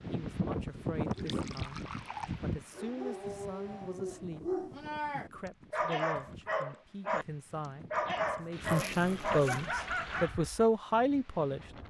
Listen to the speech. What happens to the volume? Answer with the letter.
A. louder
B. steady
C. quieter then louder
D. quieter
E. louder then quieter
A.